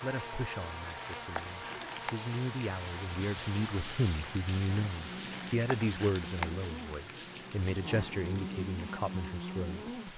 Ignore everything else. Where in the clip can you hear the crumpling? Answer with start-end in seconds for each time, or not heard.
0.9-2.1, 5.2-6.7.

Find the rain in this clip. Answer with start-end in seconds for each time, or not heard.
0.0-10.1.